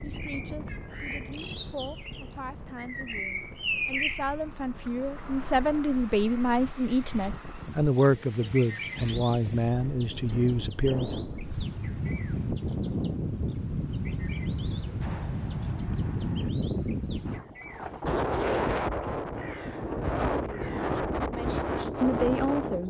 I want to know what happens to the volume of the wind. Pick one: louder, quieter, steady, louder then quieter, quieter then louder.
louder.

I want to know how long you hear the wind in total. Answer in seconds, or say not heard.
23 s.